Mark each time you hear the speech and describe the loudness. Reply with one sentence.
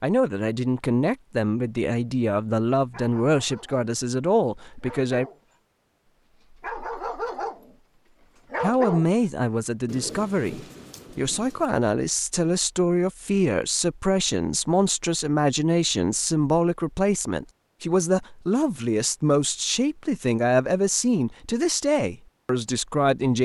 The speech can be heard from 0.0 to 5.2 s, at a steady volume; and from 8.6 to 23.4 s, at a steady volume.